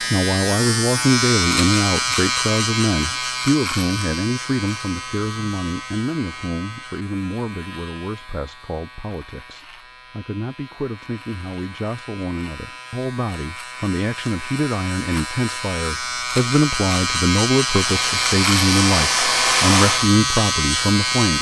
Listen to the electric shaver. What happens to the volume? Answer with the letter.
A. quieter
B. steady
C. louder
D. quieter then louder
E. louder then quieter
D.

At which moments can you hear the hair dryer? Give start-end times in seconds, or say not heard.
17.8-20.1.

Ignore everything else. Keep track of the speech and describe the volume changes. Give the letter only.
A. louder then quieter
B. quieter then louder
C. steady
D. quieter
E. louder
B.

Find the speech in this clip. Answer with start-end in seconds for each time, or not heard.
0.0-21.3.